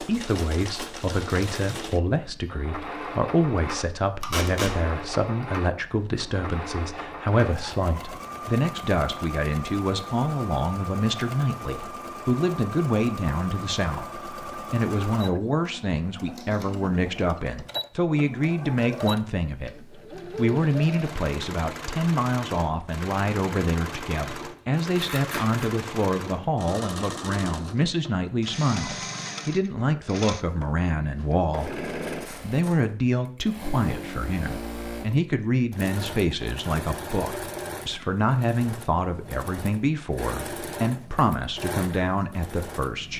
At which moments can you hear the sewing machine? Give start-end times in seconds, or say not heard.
0.0-43.1.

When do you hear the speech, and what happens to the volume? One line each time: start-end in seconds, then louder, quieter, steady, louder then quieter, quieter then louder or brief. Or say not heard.
0.0-43.1 steady.